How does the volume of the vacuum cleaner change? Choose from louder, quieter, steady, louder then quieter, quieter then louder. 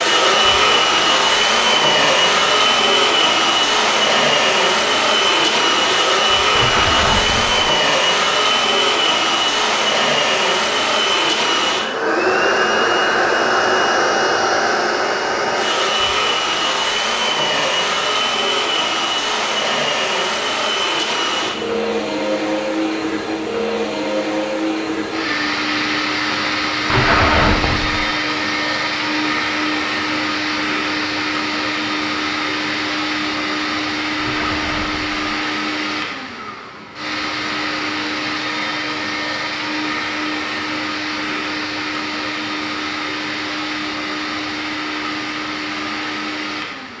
quieter.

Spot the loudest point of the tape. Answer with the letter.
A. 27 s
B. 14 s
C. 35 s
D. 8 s
A.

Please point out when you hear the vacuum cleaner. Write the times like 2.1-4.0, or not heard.
0.0-46.9.